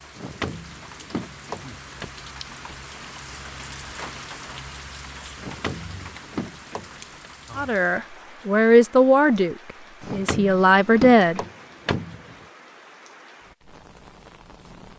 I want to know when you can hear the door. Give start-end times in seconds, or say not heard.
0.1-2.1, 5.3-7.3, 10.0-12.4.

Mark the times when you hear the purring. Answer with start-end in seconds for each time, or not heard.
not heard.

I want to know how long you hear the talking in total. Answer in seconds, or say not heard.
4 s.